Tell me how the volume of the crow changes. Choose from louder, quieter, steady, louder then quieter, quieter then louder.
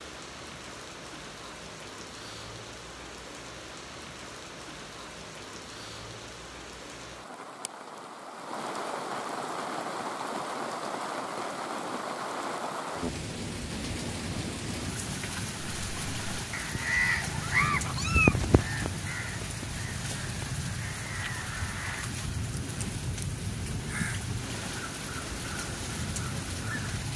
quieter.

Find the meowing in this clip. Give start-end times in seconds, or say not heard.
17.2-18.4.